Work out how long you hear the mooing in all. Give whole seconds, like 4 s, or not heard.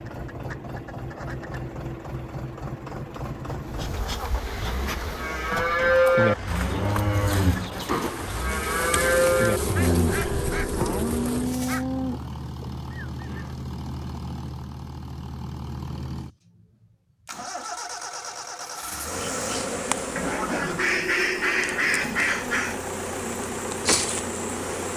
9 s.